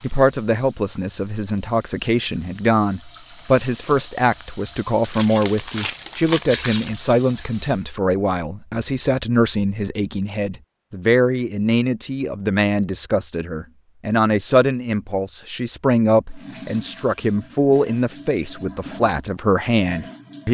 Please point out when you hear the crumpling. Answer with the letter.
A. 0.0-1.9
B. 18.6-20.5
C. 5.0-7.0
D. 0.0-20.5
C.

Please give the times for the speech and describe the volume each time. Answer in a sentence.
You can hear the speech from 0.0 to 20.5 s, at a steady volume.